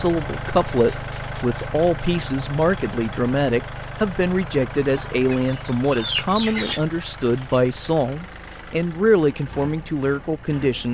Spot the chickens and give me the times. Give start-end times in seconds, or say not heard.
4.8-6.8.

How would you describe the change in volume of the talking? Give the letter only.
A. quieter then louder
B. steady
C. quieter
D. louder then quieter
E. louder
B.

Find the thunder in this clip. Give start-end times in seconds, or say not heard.
not heard.